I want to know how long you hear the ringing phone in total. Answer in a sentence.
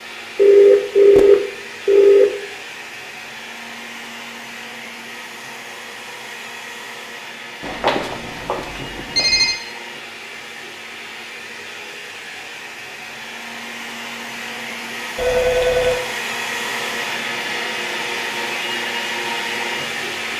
You can hear the ringing phone for 5 seconds altogether.